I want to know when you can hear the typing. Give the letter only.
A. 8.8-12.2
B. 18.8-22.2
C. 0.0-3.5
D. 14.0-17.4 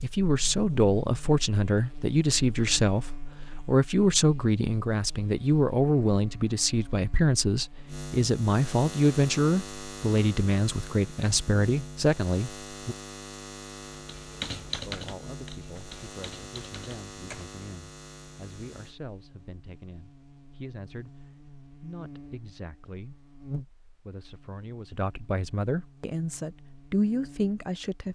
D.